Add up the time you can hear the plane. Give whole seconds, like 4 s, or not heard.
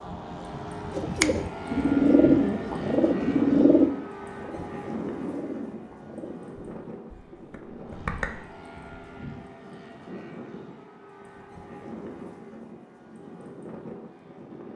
15 s.